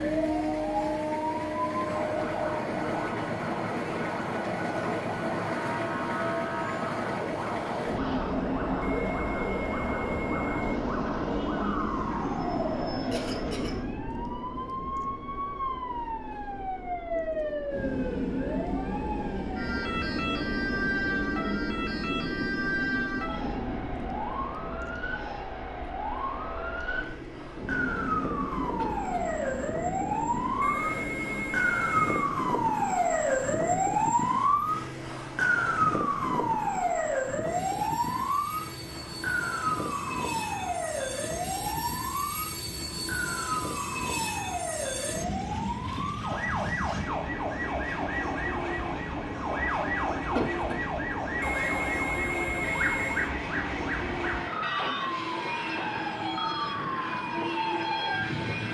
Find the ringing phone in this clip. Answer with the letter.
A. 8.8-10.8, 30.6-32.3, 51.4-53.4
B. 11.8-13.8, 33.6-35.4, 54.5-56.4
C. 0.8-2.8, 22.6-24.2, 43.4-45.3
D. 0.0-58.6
A.